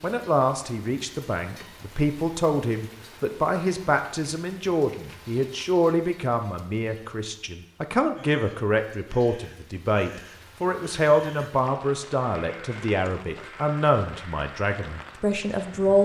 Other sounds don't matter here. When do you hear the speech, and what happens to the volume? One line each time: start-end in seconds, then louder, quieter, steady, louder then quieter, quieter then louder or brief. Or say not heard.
0.0-16.0 steady.